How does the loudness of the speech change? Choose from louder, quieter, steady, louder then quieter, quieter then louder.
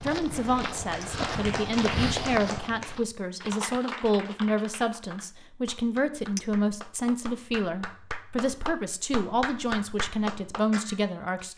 steady.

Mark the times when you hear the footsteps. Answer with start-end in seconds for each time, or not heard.
0.0-3.0.